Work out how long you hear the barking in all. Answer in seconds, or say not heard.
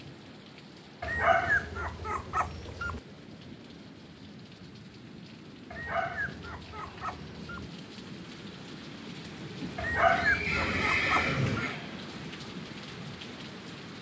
6 s.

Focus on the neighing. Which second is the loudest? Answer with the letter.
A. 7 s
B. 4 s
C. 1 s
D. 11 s
D.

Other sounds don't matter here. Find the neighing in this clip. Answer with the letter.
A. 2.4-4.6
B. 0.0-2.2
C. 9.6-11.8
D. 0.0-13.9
C.